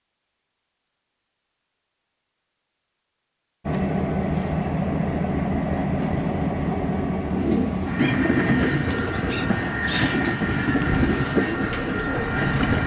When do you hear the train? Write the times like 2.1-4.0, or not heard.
3.6-12.8.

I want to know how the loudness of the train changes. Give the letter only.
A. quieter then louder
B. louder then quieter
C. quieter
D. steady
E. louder
D.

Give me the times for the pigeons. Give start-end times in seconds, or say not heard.
7.2-12.8.